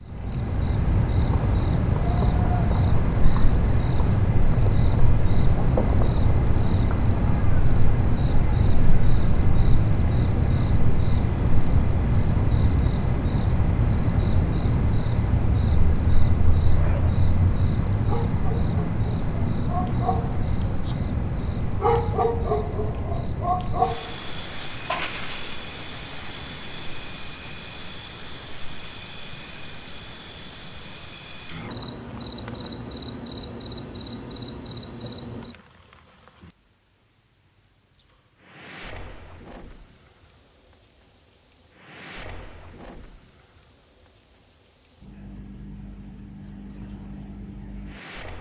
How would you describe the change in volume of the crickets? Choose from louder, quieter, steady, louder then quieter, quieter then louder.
quieter.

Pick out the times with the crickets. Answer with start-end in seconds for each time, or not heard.
0.0-48.3.